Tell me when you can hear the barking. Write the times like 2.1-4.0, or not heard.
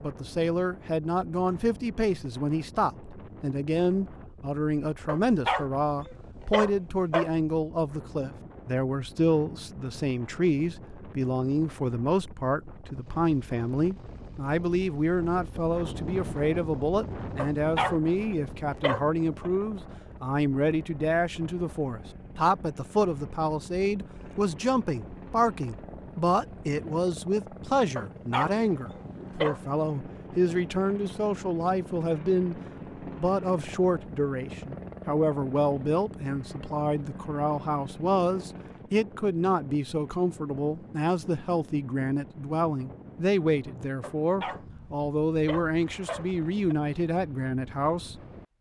5.0-7.3, 17.4-19.5, 27.9-29.6, 44.0-46.8.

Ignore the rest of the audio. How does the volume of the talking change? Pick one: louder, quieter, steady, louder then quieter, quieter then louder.
steady.